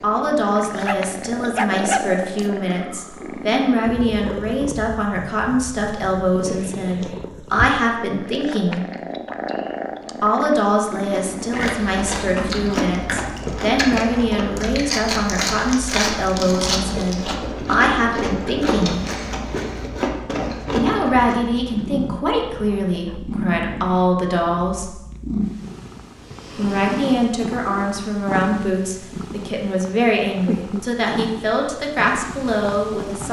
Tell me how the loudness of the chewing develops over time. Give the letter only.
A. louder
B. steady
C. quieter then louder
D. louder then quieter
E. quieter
B.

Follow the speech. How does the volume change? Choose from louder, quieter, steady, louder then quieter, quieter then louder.
steady.